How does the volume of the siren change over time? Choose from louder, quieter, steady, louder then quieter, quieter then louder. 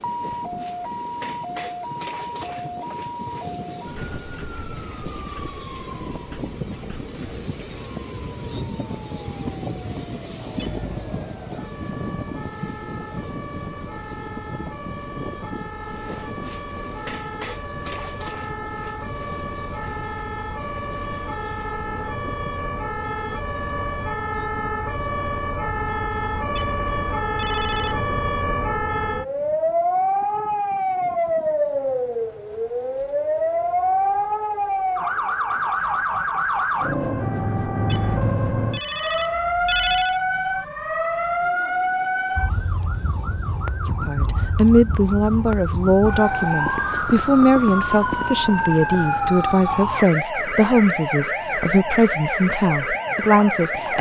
louder.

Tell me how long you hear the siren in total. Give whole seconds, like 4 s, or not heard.
54 s.